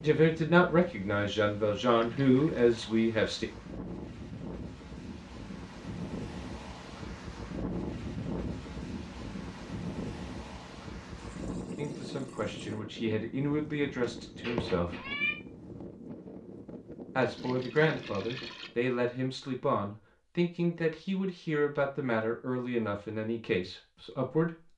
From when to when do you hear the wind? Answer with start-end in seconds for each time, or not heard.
0.0-18.8.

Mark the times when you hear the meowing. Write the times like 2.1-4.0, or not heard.
14.0-15.3.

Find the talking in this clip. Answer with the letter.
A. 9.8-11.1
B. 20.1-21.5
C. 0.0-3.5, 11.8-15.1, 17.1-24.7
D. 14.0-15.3
C.